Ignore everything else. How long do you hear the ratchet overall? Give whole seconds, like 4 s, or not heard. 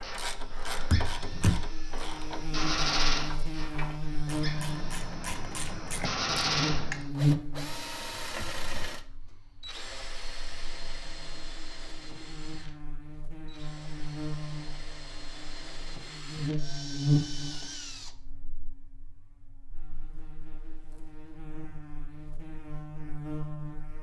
7 s.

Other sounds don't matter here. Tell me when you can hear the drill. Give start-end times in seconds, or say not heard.
0.0-18.1.